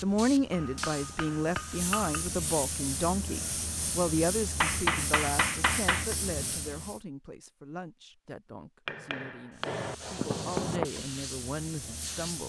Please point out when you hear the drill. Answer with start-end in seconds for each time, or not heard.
not heard.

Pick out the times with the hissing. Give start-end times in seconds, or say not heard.
0.0-7.0, 9.5-12.4.